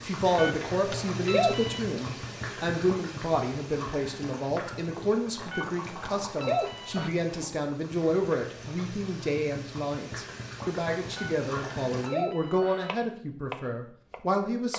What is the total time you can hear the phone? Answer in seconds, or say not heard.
5 s.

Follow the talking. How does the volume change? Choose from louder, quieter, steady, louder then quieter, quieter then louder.
steady.